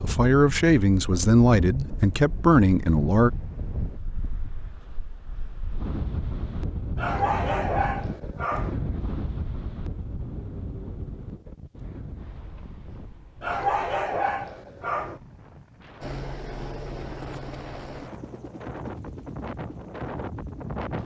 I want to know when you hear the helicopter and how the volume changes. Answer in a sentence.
The helicopter can be heard from 16.0 to 20.9 s, getting quieter.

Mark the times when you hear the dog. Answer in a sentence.
You can hear the dog from 7.0 to 8.8 s and from 13.4 to 15.2 s.